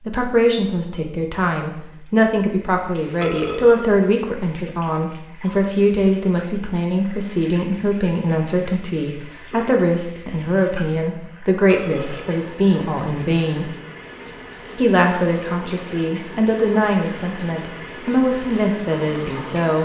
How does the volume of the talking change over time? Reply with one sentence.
The loudness of the talking stays about the same.